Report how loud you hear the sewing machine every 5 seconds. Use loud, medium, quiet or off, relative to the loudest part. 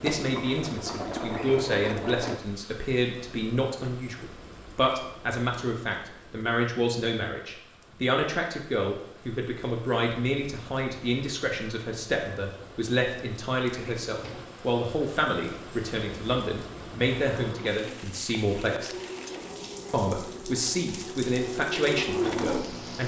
loud, off, off, medium, loud.